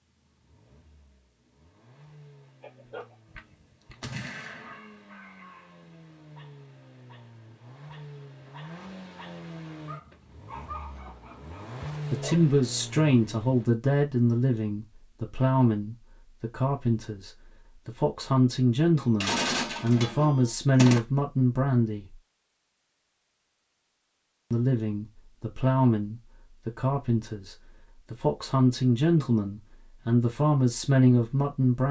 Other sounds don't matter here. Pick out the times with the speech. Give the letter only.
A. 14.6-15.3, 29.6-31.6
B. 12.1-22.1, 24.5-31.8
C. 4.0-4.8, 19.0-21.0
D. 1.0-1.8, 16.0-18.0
B.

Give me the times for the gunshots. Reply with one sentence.
The gunshots can be heard from 4.0 to 4.8 s and from 19.0 to 21.0 s.